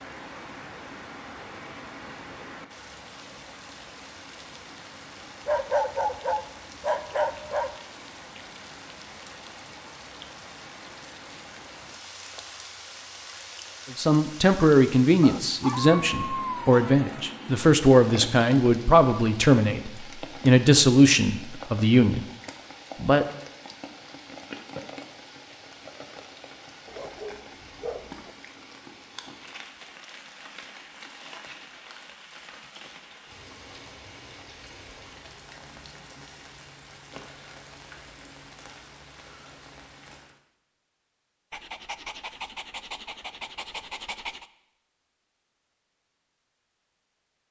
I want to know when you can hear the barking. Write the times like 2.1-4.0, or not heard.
5.5-7.8, 15.2-17.2, 26.9-28.3, 41.5-44.5.